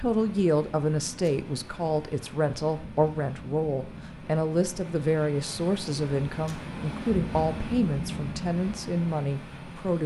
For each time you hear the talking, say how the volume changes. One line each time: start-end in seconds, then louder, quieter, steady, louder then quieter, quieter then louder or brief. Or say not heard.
0.0-10.0 steady.